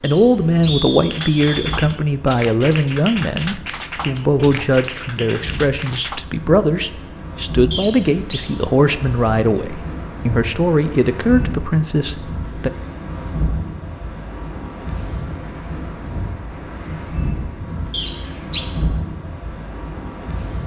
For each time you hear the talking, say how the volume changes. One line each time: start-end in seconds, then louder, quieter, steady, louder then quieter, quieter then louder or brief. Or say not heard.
0.0-12.7 steady.